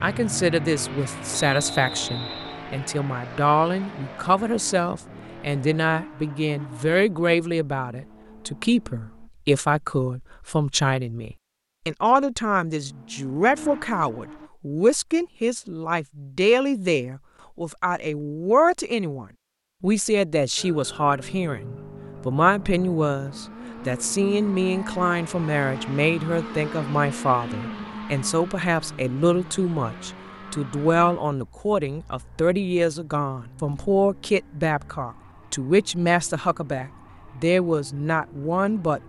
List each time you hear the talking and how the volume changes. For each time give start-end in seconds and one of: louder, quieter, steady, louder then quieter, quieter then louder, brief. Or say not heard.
0.0-39.0 steady.